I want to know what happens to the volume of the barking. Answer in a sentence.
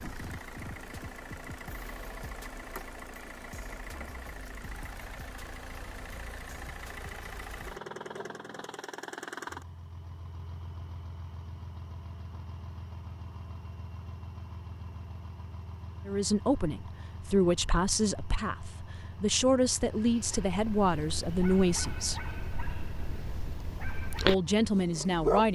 The volume of the barking goes up.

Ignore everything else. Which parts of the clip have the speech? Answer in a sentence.
The speech can be heard from 16.1 to 22.2 s and from 24.2 to 25.4 s.